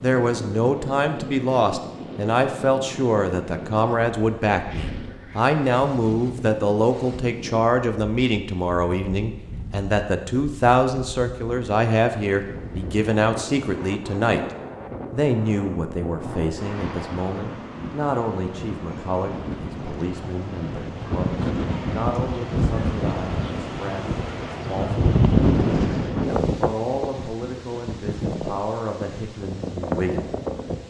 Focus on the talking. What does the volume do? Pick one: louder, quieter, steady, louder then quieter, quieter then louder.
quieter.